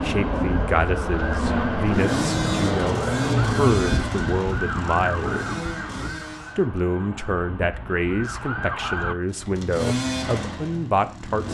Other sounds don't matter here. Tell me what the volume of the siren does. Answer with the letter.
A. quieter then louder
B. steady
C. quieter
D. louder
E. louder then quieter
C.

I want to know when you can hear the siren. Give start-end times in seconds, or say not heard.
0.0-9.2.